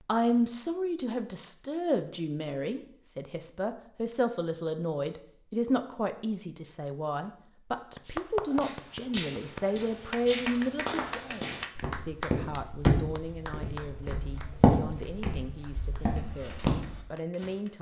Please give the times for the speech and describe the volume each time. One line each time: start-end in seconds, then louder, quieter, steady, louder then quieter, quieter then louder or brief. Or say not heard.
0.1-17.7 quieter.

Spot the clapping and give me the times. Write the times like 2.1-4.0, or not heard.
8.0-17.7.